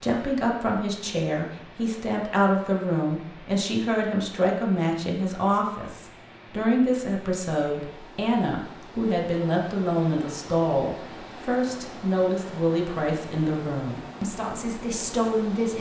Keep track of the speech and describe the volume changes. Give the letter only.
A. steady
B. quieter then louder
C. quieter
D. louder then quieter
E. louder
A.